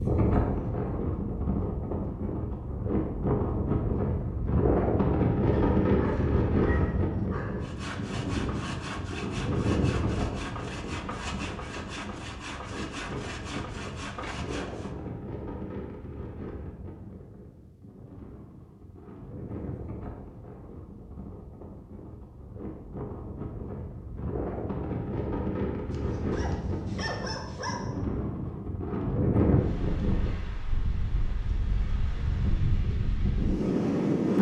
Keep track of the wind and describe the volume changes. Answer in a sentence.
The loudness of the wind goes down, then up.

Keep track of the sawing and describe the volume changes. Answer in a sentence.
The loudness of the sawing stays about the same.